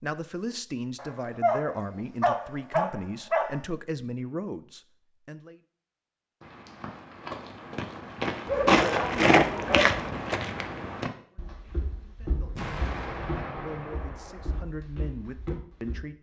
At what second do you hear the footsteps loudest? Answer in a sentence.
The loudest moment of the footsteps is at 9 seconds.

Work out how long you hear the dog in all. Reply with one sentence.
The dog can be heard for 4 seconds in total.